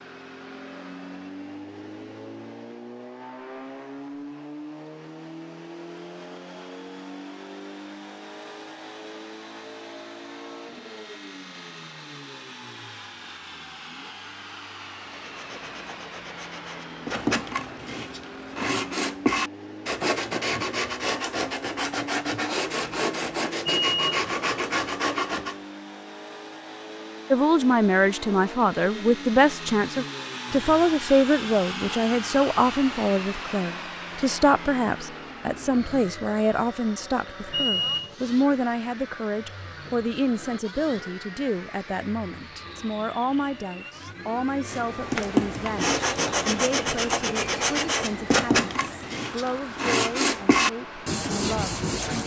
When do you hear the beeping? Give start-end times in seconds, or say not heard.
23.6-24.3, 37.5-38.1.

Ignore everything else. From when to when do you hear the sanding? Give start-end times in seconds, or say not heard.
15.1-25.6, 44.6-52.2.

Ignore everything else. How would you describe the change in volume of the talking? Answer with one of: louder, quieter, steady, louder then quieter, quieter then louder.
quieter.